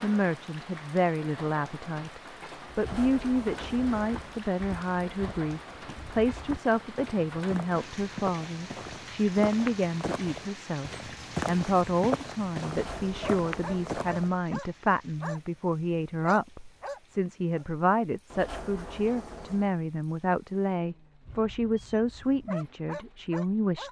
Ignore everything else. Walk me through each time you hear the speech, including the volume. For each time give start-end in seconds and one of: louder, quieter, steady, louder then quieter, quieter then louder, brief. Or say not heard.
0.0-23.8 steady.